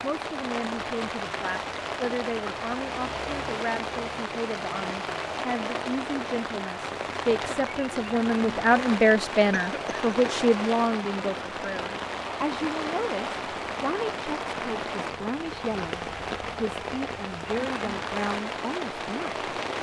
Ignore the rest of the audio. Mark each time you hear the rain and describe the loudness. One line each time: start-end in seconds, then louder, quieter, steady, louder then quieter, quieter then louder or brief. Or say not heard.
0.0-19.7 steady.